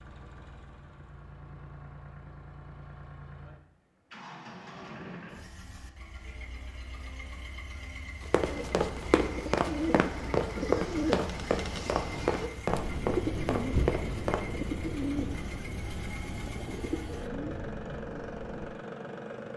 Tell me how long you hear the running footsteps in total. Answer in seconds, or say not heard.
6 s.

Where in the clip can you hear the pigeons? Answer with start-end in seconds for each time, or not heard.
8.3-18.8.